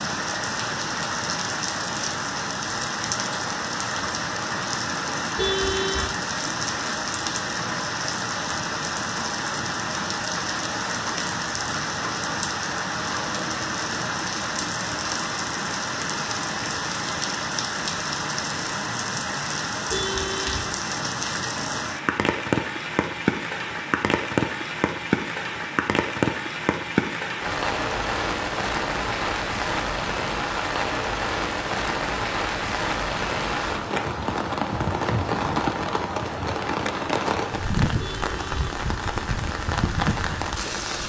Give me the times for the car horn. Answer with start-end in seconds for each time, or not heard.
5.3-6.1, 19.9-20.8, 38.0-38.5.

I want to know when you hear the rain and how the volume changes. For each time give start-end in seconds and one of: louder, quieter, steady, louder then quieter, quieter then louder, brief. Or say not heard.
0.0-41.0 steady.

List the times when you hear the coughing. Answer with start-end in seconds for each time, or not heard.
not heard.